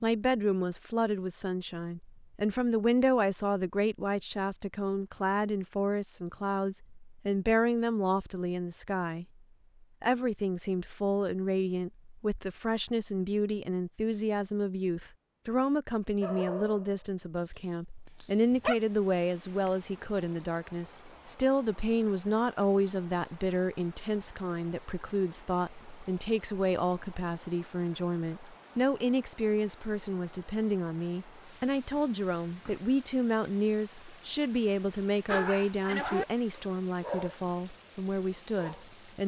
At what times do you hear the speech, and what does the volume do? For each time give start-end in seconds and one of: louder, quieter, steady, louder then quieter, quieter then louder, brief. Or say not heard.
0.0-39.2 steady.